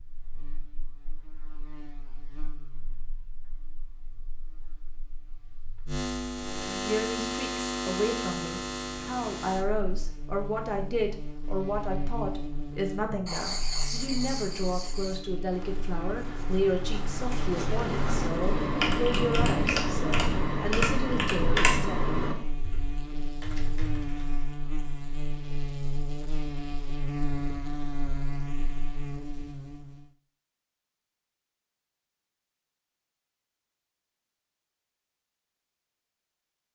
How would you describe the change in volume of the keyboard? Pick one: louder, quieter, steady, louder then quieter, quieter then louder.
quieter.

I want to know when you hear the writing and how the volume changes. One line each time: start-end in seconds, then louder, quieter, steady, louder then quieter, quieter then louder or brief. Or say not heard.
13.2-18.3 quieter then louder.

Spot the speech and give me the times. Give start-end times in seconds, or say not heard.
6.7-22.1.